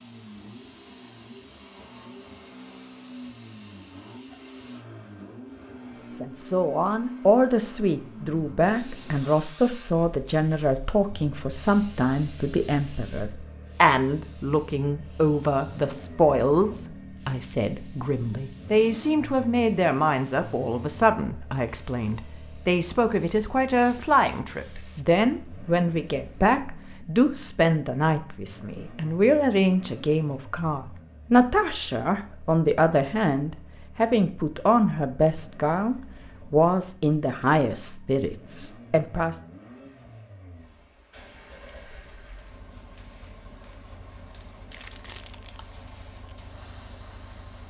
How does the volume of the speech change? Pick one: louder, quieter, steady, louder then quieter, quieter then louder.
steady.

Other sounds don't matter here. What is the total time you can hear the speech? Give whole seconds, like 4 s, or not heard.
33 s.